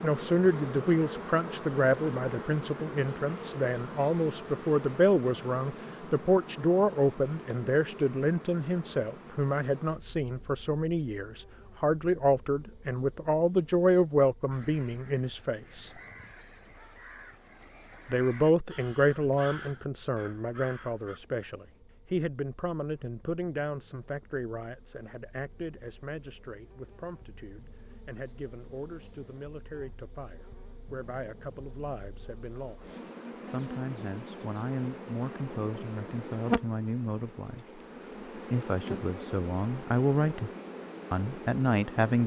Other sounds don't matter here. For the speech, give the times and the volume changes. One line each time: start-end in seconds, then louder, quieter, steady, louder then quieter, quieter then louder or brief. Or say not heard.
0.0-15.9 steady
18.1-40.5 quieter then louder
41.1-42.2 brief.